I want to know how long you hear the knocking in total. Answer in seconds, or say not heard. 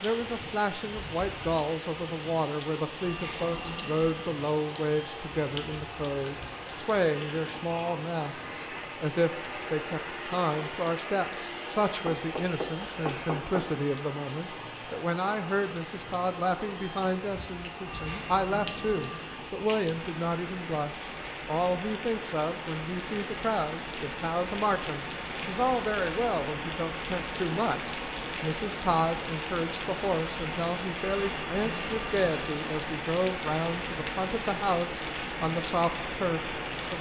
2 s.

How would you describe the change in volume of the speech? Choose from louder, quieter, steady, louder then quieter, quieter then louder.
steady.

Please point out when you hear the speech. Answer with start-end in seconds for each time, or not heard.
0.0-36.9.